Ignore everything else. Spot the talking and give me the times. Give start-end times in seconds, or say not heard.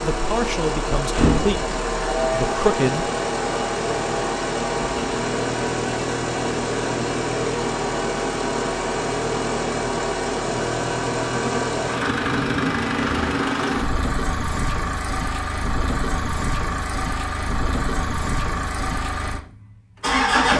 0.0-3.1.